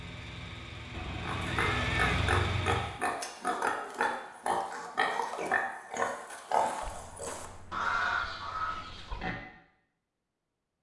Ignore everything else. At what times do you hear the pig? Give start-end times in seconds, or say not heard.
1.2-9.3.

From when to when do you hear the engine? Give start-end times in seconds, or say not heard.
0.0-3.0.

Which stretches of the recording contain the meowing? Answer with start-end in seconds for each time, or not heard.
0.9-2.7, 6.8-9.2.